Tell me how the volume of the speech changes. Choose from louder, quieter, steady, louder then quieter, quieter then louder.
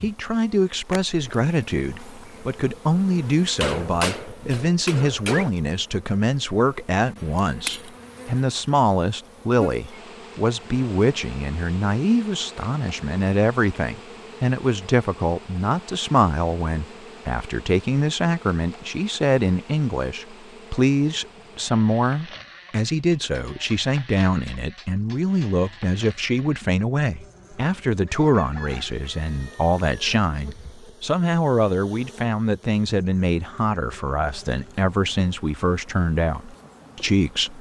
steady.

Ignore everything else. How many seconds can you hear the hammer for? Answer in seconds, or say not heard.
5 s.